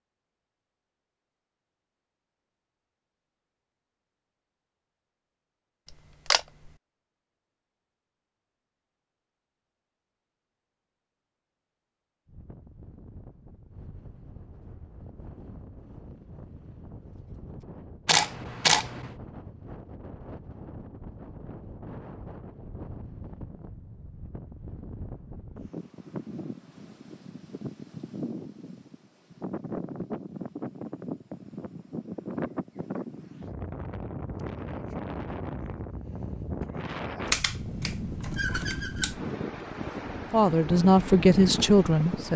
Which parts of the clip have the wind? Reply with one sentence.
You can hear the wind from 12.2 to 42.3 s.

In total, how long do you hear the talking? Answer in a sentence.
The talking can be heard for 2 seconds in total.